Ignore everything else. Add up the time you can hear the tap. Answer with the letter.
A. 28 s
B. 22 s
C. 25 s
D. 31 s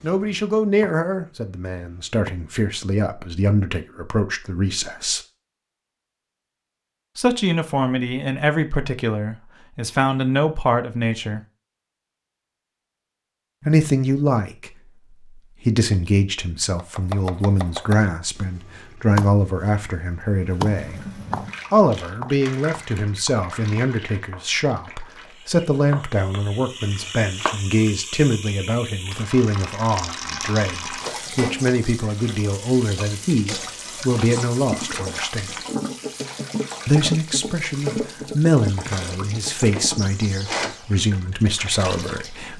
B.